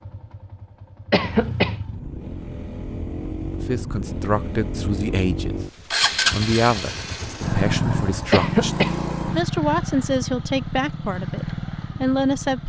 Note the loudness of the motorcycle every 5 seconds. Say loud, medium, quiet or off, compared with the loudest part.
medium, loud, medium.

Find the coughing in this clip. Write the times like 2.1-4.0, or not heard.
1.1-1.8, 8.3-8.9.